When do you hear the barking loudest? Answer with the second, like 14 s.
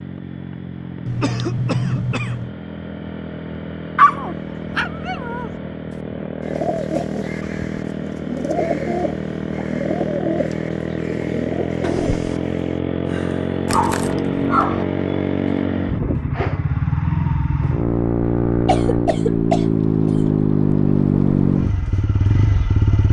4 s.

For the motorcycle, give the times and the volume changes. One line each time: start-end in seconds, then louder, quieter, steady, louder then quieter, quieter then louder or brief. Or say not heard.
0.0-23.0 louder.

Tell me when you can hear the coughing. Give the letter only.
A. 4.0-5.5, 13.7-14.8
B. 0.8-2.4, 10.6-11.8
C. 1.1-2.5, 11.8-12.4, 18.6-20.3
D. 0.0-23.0
C.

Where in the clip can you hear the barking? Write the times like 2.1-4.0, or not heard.
4.0-5.5, 13.7-14.8.